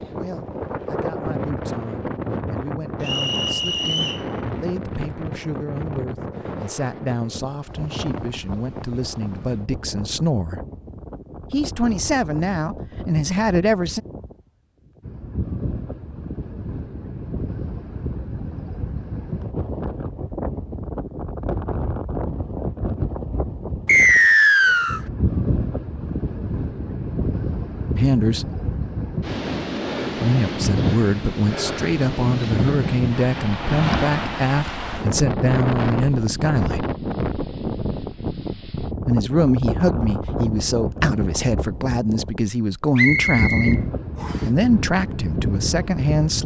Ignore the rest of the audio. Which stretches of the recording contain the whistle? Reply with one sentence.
You can hear the whistle from 3.0 to 4.2 s, from 23.9 to 25.0 s and from 43.0 to 44.5 s.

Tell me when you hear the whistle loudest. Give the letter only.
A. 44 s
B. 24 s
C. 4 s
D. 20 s
B.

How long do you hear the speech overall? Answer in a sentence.
The speech can be heard for 27 seconds in total.